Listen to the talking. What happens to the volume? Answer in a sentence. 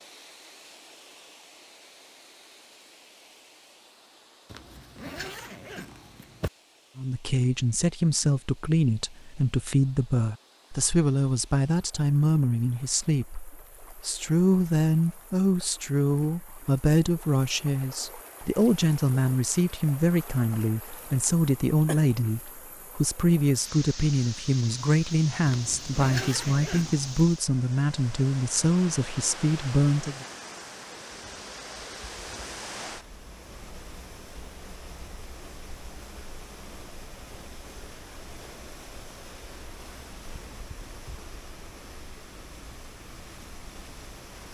The loudness of the talking stays about the same.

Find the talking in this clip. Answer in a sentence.
The talking can be heard from 7.0 to 30.2 s.